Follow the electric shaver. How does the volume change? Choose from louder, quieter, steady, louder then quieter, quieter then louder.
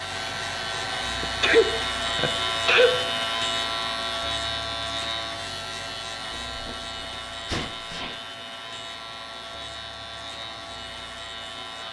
quieter.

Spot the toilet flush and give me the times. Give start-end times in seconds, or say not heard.
not heard.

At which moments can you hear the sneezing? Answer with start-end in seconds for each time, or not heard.
1.2-3.0, 6.3-8.2.